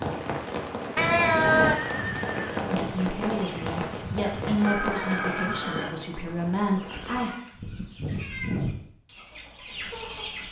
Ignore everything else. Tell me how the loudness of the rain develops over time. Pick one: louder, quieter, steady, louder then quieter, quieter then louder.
quieter.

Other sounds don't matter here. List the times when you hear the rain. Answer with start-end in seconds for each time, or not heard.
0.0-7.3.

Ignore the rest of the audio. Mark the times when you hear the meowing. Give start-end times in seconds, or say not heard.
0.9-1.8, 6.8-8.6.